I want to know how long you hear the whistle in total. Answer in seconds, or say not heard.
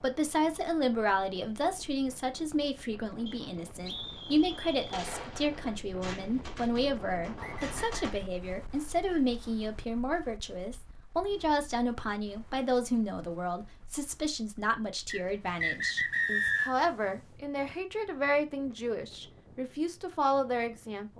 4 s.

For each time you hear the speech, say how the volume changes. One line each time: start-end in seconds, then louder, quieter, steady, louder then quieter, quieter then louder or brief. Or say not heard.
0.0-21.1 steady.